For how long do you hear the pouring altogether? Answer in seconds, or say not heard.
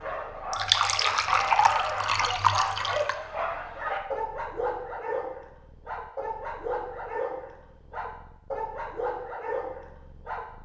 3 s.